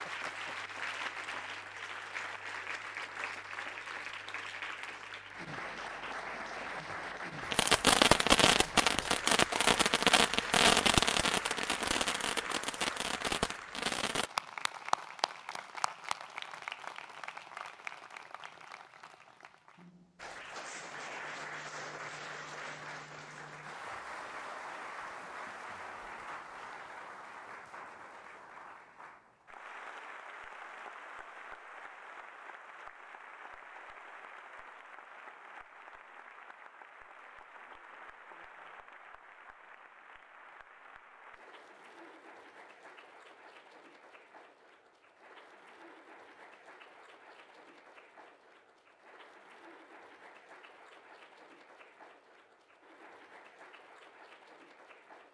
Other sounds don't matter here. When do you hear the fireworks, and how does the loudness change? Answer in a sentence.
The fireworks can be heard from 7.5 to 14.3 s, getting quieter.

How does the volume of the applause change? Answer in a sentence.
The loudness of the applause goes down.